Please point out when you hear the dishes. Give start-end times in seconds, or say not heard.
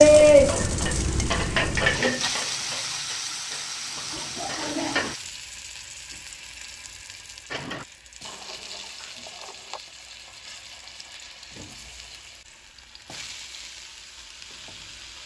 0.0-5.2, 7.5-9.8.